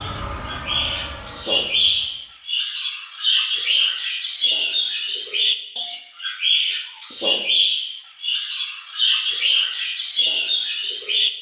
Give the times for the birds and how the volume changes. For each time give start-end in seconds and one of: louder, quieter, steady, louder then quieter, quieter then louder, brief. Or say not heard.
0.0-11.3 steady.